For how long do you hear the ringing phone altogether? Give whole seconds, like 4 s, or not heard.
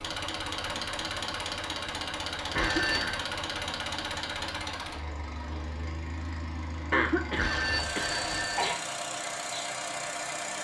2 s.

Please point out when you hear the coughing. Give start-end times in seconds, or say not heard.
2.5-3.3, 6.9-8.9.